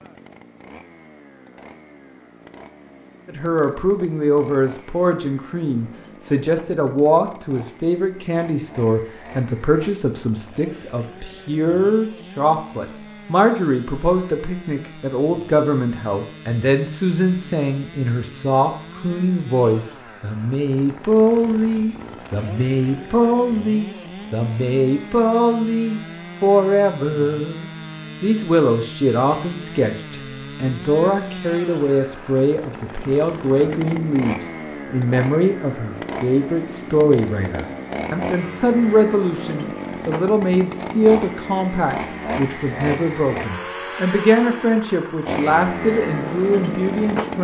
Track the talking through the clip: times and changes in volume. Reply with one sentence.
You can hear the talking from 3.2 to 47.3 s, at a steady volume.